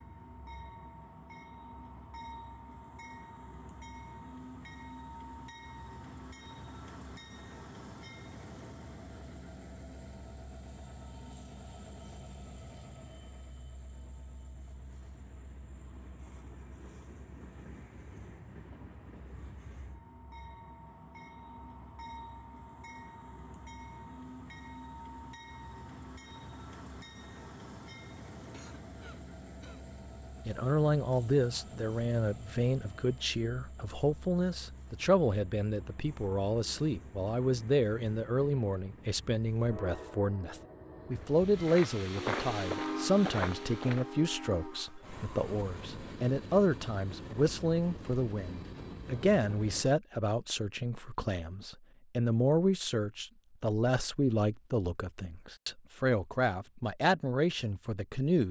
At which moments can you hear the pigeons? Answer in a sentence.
You can't hear the pigeons here.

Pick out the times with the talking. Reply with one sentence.
You can hear the talking from 30.4 to 58.4 s.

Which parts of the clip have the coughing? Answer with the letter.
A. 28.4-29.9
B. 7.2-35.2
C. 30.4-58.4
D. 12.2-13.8
A.